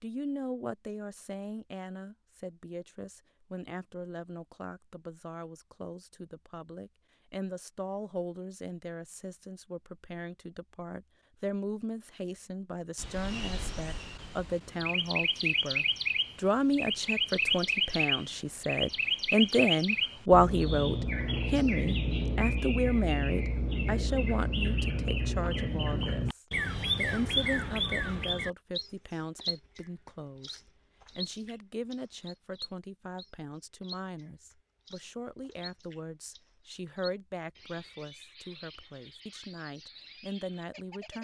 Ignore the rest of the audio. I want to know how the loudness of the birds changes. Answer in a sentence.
The volume of the birds goes down.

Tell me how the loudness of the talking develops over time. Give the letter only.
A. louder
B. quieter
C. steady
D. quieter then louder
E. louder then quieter
E.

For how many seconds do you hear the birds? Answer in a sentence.
The birds can be heard for 28 seconds in total.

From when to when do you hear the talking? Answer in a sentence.
You can hear the talking from 0.0 to 41.1 s.